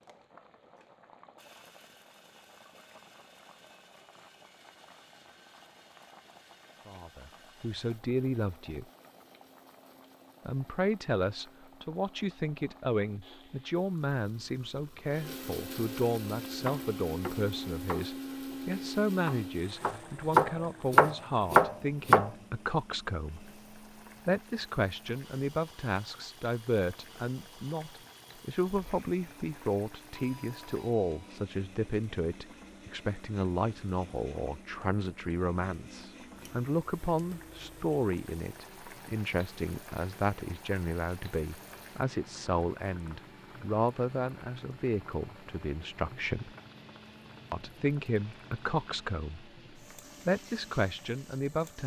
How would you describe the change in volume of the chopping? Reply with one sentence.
The volume of the chopping goes down, then up.